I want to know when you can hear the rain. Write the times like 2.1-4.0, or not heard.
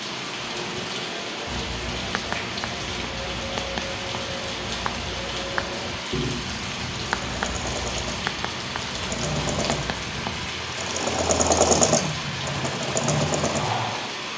0.0-14.3.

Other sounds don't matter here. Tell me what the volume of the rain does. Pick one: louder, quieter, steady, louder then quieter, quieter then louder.
steady.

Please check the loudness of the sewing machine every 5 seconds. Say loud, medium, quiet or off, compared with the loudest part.
quiet, medium, loud.